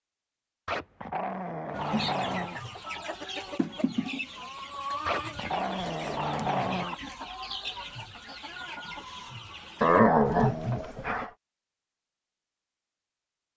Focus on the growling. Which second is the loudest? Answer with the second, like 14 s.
10 s.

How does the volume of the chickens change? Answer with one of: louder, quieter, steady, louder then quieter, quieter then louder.
quieter.